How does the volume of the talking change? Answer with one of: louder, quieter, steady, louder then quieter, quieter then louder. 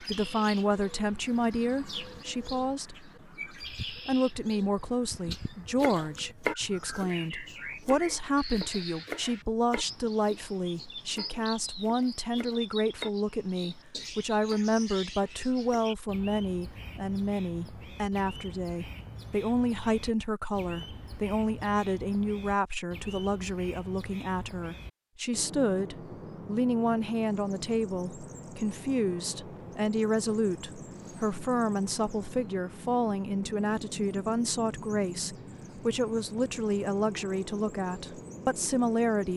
steady.